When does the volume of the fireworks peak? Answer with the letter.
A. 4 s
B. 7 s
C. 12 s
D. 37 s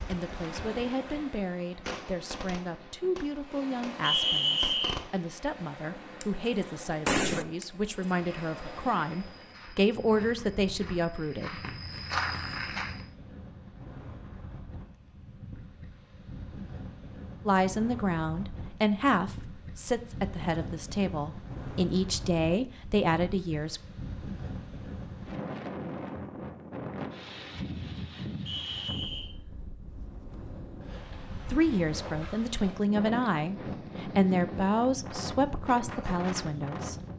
B.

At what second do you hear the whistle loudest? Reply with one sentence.
The volume of the whistle peaks at 4 seconds.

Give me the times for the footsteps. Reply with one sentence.
The footsteps can be heard from 8.1 to 13.1 s.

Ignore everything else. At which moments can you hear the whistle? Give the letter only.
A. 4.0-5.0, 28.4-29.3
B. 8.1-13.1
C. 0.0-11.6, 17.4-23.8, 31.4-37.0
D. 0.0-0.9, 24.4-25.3
A.